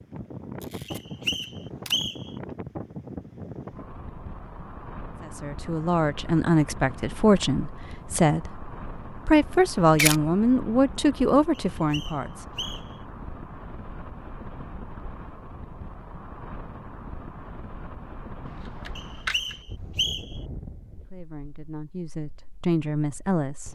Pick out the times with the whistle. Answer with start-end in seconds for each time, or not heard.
0.8-2.3, 11.6-13.0, 18.9-20.4.